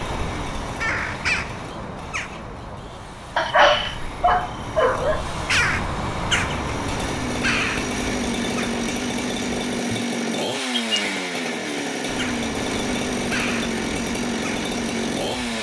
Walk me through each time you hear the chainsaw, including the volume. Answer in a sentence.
You can hear the chainsaw from 0.0 to 15.5 s, getting louder.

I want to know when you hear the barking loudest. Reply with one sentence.
The volume of the barking peaks at 4 seconds.